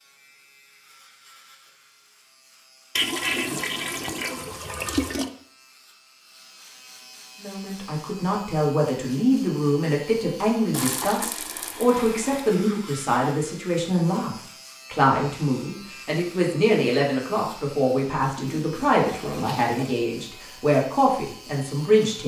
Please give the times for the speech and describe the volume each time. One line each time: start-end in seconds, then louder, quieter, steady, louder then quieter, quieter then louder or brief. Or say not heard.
7.4-22.2 steady.